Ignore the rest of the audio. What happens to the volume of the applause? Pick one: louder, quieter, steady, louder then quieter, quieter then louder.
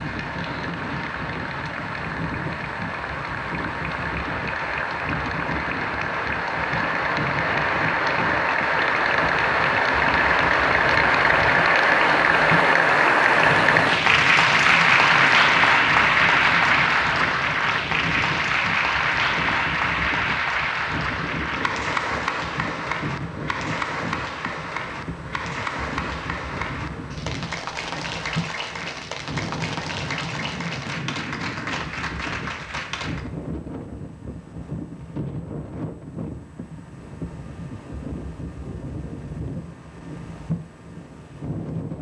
louder then quieter.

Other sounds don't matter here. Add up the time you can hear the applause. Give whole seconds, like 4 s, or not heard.
33 s.